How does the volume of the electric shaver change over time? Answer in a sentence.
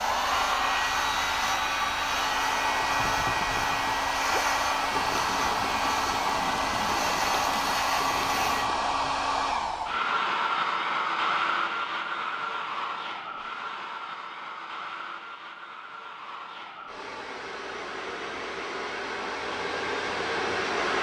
The volume of the electric shaver stays about the same.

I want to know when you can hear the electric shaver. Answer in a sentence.
The electric shaver can be heard from 0.0 to 8.7 s.